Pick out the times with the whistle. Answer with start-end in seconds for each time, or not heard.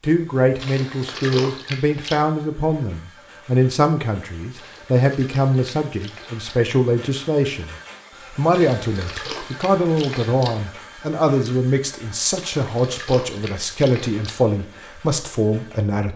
not heard.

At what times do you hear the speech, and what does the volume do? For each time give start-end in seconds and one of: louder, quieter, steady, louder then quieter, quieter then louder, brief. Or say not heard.
0.0-16.1 steady.